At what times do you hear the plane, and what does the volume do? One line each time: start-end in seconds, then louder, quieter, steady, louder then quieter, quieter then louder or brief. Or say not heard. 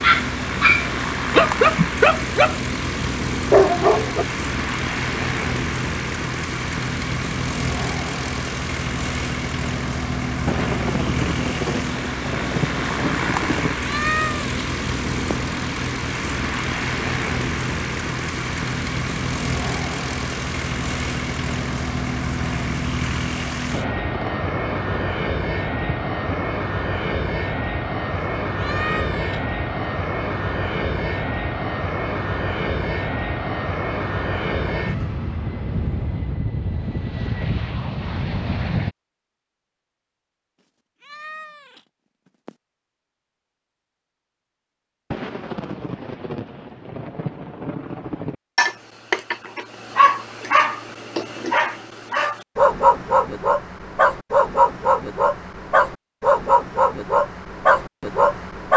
0.0-39.0 steady.